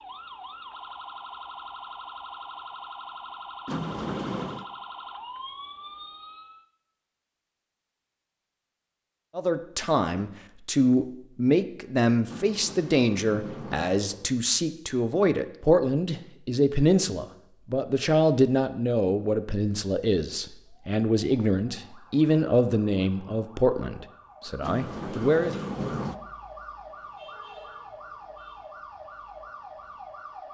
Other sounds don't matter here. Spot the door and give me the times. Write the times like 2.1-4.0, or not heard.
3.6-4.7, 12.2-14.3, 24.6-26.1.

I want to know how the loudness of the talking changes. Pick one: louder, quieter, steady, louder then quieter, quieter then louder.
steady.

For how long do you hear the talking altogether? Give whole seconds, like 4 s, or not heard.
16 s.